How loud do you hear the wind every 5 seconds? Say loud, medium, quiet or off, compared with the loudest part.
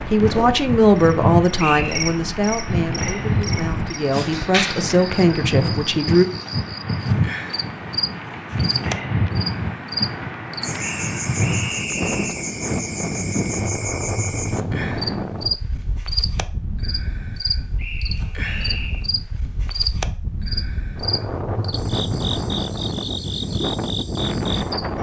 loud, loud, loud, medium, loud.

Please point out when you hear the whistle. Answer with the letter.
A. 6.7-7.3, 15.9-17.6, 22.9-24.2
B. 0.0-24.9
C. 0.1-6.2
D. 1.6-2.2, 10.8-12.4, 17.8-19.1
D.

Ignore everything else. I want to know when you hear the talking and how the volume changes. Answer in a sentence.
The talking can be heard from 0.1 to 6.2 s, getting quieter then louder.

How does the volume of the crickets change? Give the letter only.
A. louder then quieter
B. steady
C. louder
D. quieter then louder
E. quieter
B.